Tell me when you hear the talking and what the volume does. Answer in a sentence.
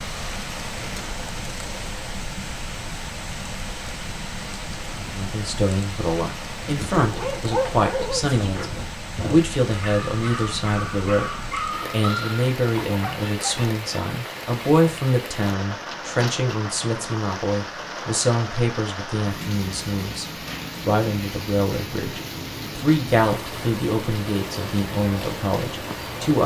You can hear the talking from 5.0 to 26.4 s, at a steady volume.